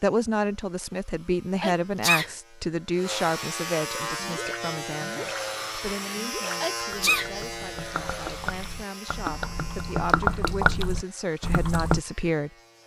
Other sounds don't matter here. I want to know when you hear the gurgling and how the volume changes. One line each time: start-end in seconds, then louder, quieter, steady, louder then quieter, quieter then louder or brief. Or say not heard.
4.2-5.5 brief
6.0-12.0 louder.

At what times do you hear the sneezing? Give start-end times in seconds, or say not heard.
1.6-2.3, 6.6-7.3.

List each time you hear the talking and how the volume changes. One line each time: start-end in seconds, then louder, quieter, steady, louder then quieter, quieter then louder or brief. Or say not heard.
0.0-12.5 quieter then louder.